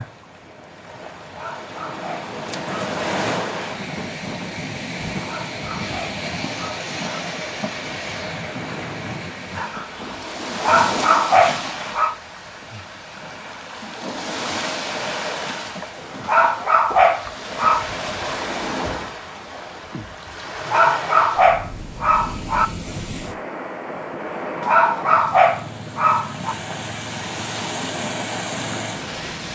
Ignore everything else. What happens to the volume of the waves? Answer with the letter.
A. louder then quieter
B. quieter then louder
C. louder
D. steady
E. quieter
D.